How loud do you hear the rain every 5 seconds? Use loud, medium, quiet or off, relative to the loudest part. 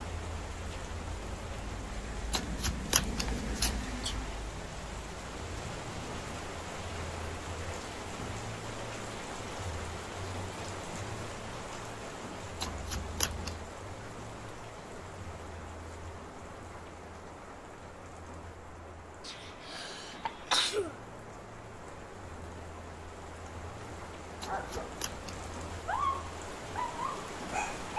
loud, loud, loud, medium, medium, loud.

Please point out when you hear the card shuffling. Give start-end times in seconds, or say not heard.
2.3-3.9, 12.6-13.6, 24.4-25.5.